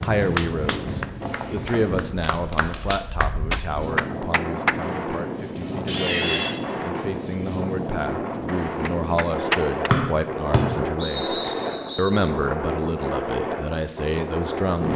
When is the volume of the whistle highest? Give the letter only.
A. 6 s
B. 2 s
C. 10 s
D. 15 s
C.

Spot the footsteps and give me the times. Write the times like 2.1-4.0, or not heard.
not heard.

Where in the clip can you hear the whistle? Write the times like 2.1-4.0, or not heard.
9.9-12.1.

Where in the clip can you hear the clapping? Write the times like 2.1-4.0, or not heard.
0.0-4.8, 8.4-9.9.